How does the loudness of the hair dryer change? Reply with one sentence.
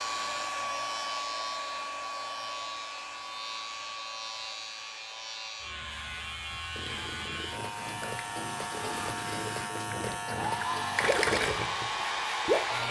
The loudness of the hair dryer goes down, then up.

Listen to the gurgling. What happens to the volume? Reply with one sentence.
The loudness of the gurgling goes up.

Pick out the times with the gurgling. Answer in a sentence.
You can hear the gurgling from 6.6 to 12.8 s.